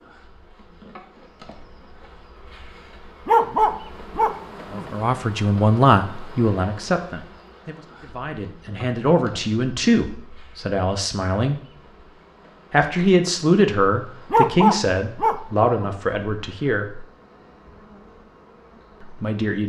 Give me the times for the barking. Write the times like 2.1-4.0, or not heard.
3.2-4.8, 14.3-15.9.